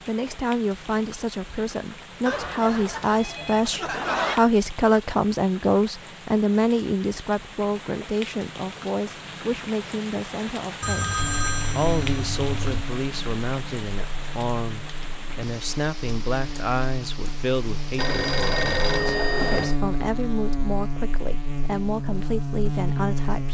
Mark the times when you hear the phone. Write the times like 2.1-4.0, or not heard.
2.2-4.4, 10.8-12.6, 17.9-19.8.